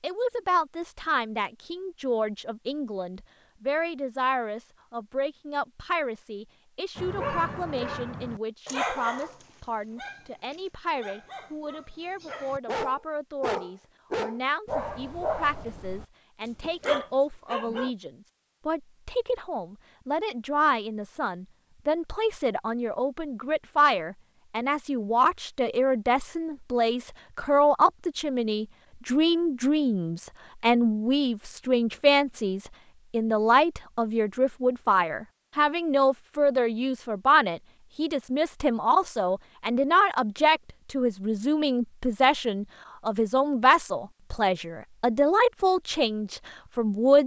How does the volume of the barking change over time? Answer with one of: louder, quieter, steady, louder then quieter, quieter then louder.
quieter then louder.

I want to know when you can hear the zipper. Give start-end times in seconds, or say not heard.
not heard.